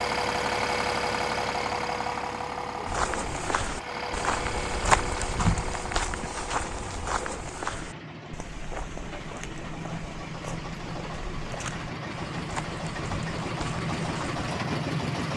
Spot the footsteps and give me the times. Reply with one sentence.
You can hear the footsteps from 2.9 to 14.4 s.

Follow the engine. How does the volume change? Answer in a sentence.
The loudness of the engine goes down, then up.